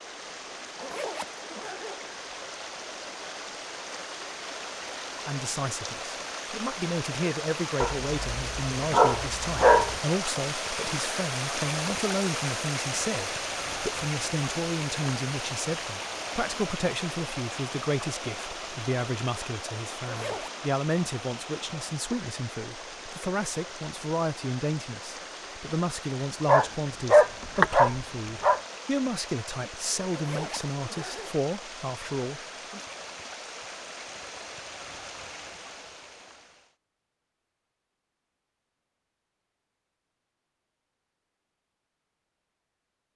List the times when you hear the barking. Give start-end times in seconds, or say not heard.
7.8-10.0, 26.4-28.6.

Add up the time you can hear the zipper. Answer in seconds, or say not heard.
3 s.